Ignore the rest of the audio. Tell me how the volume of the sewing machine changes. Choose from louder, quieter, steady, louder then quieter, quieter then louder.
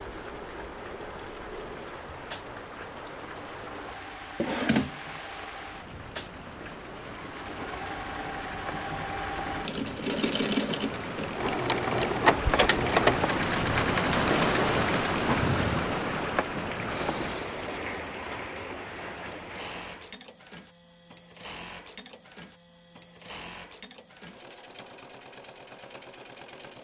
louder then quieter.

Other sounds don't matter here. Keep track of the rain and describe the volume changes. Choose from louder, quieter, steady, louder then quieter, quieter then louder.
louder then quieter.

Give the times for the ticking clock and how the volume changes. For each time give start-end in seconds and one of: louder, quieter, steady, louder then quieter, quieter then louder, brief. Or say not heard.
not heard.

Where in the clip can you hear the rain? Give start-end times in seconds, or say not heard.
0.0-20.2.